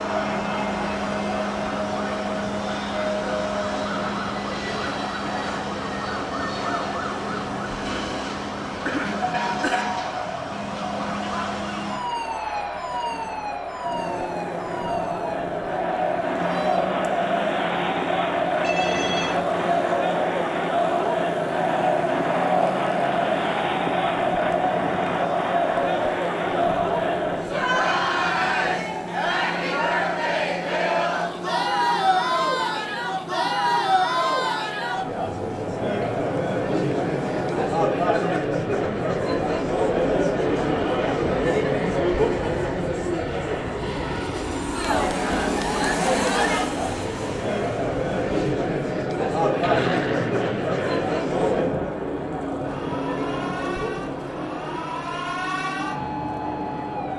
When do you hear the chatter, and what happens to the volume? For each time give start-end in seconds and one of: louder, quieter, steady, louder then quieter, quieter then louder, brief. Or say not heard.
0.0-57.1 louder.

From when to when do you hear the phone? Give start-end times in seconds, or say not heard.
18.6-19.4.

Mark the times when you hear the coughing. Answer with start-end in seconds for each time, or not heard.
7.8-9.8.